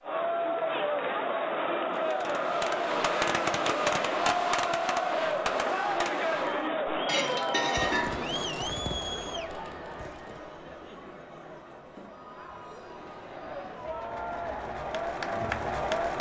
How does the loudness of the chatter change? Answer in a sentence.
The volume of the chatter goes down, then up.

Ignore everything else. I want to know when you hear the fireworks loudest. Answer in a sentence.
The volume of the fireworks peaks at 4 seconds.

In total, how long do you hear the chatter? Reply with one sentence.
The chatter can be heard for 16 seconds in total.